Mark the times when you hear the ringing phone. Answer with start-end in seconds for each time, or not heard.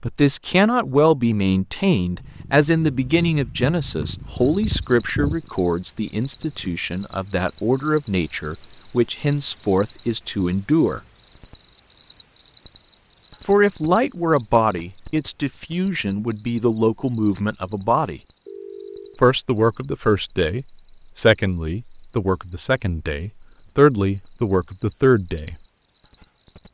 18.4-19.2.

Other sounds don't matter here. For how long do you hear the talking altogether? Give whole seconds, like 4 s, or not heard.
22 s.